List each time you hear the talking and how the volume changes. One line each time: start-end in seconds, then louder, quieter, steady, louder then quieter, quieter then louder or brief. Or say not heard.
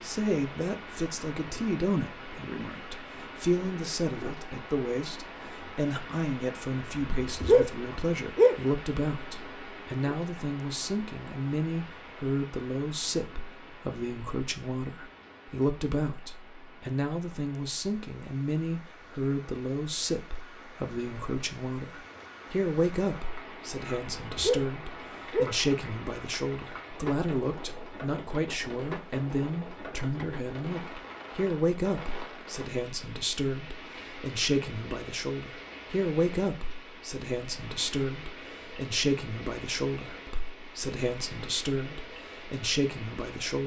0.0-43.6 steady.